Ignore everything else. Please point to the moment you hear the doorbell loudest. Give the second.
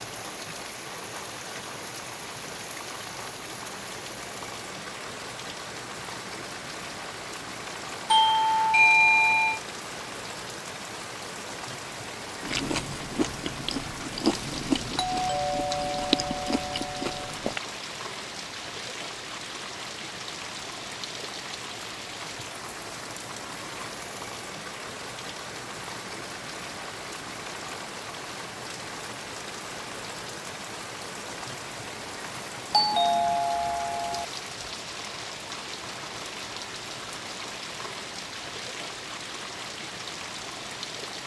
9 s.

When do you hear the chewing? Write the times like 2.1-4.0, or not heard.
12.4-17.6.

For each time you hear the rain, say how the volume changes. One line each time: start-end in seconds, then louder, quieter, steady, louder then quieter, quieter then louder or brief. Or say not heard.
0.0-41.2 steady.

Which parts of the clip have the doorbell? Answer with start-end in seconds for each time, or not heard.
8.1-9.6, 14.9-17.4, 32.7-34.2.